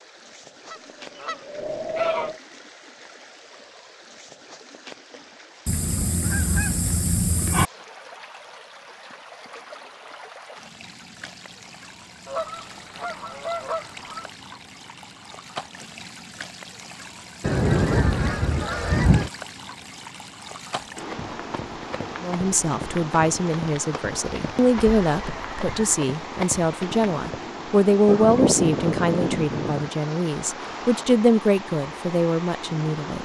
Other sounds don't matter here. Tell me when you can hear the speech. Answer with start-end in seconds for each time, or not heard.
22.2-33.2.